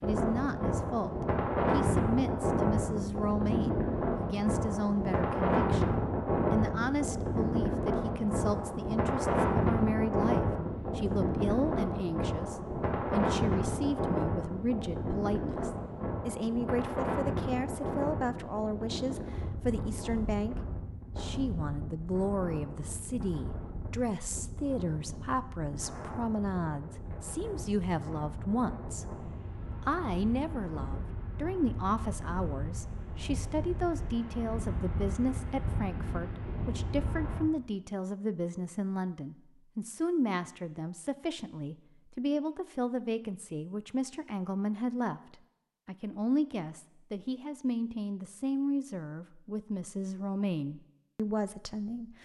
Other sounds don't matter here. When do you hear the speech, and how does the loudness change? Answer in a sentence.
The speech can be heard from 0.0 to 52.2 s, at a steady volume.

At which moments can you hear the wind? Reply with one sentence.
The wind can be heard from 0.0 to 37.4 s.